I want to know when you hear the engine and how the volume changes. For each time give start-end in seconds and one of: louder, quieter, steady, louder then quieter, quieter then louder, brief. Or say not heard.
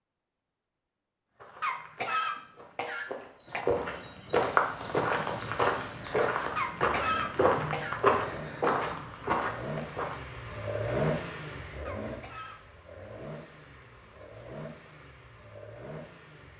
4.5-16.5 louder then quieter.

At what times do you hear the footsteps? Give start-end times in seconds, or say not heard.
1.4-10.2.